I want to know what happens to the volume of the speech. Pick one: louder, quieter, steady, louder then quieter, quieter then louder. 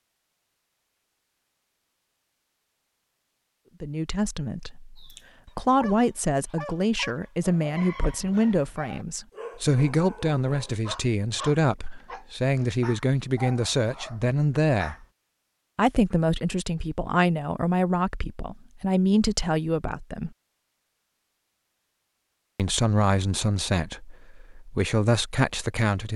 steady.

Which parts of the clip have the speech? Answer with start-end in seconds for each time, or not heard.
3.8-14.9, 15.8-20.3, 22.6-26.1.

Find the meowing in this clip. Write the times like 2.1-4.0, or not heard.
not heard.